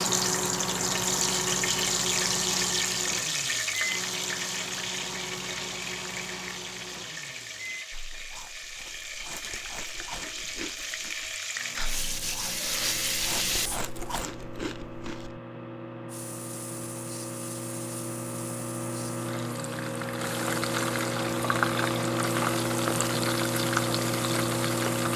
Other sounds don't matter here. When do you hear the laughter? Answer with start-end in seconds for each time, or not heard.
not heard.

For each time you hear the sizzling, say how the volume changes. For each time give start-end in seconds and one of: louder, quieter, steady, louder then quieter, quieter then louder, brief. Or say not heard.
0.0-13.8 quieter then louder
16.1-25.1 louder.